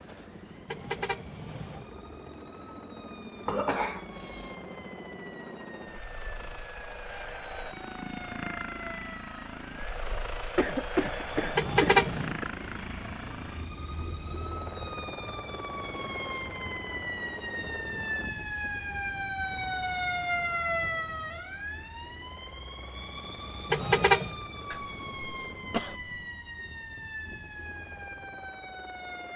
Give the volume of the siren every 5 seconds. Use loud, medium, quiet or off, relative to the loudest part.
quiet, medium, medium, loud, loud, medium.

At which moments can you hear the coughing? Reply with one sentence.
You can hear the coughing from 3.5 to 4.5 s, from 10.6 to 12.4 s and from 24.7 to 26.2 s.